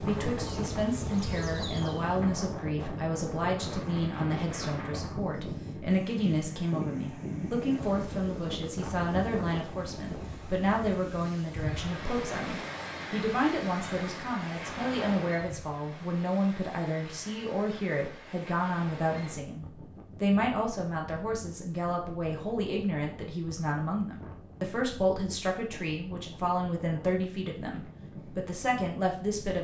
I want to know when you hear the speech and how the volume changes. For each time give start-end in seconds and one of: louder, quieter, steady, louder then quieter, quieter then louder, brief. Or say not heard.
0.0-29.5 steady.